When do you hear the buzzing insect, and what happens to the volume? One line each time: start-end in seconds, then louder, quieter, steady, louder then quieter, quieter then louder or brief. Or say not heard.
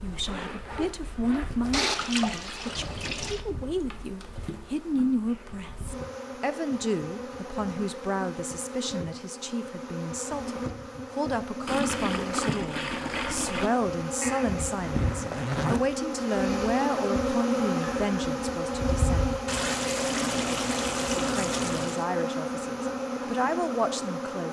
0.0-24.4 louder.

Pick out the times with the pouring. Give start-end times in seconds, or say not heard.
1.7-3.4, 11.7-13.7, 19.4-22.1.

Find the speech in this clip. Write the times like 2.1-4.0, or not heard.
0.0-19.4, 21.1-24.4.